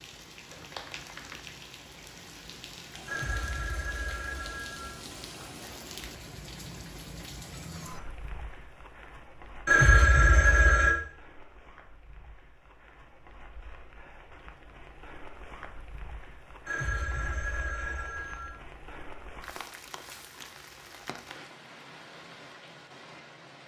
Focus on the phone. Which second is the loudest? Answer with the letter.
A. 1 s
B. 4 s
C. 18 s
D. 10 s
D.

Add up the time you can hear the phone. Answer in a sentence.
The phone can be heard for 5 seconds in total.